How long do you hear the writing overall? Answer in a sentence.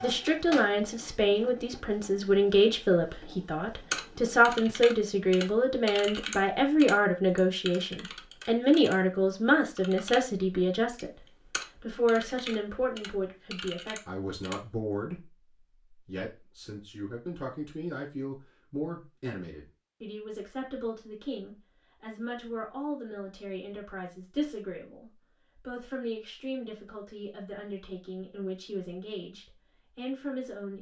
The writing can't be heard in this clip.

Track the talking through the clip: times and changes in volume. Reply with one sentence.
You can hear the talking from 0.0 to 30.7 s, getting quieter.